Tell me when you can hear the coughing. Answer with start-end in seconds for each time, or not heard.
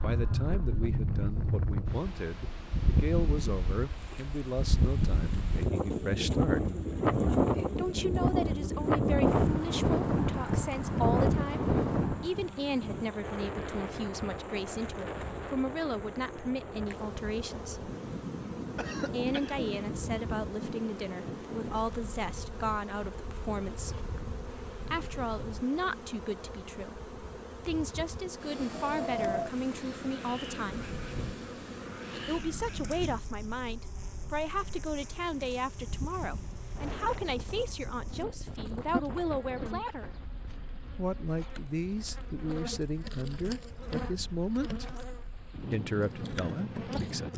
18.8-19.7.